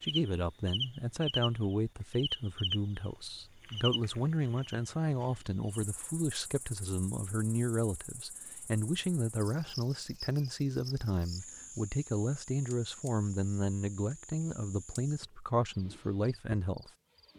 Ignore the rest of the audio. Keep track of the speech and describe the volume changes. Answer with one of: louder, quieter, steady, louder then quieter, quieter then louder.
steady.